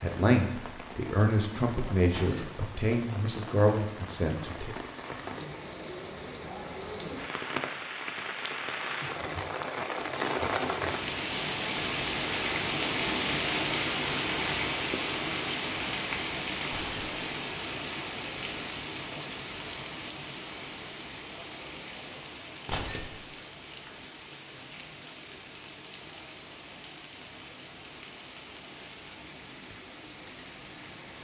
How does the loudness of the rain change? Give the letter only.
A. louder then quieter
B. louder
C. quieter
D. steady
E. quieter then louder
A.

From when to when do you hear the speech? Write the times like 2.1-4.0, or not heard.
0.0-4.8.